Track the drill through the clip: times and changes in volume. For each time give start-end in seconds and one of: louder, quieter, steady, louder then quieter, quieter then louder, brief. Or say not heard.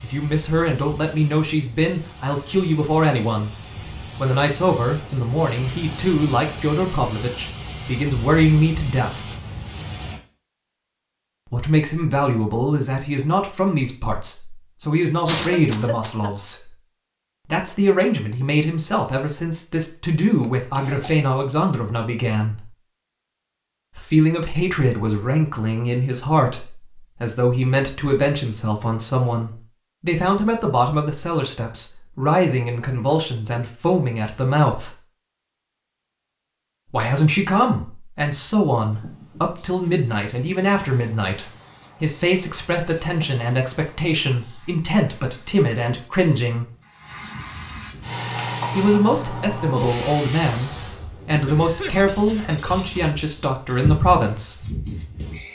not heard.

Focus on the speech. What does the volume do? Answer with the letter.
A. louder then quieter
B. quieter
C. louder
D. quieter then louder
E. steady
E.